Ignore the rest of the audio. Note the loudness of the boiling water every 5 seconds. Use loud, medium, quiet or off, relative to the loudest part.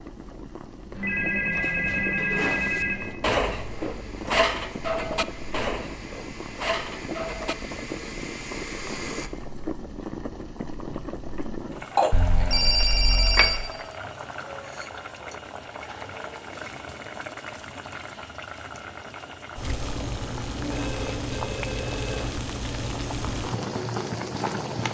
medium, medium, loud, medium, loud.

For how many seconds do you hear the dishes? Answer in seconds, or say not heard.
6 s.